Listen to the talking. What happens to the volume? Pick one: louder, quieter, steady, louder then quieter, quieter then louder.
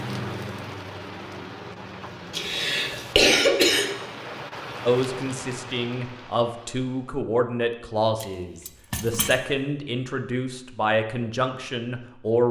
steady.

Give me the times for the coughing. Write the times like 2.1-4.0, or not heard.
2.3-3.9.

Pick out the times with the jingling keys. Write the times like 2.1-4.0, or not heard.
8.2-9.4.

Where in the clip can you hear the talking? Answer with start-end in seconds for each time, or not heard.
4.8-12.4.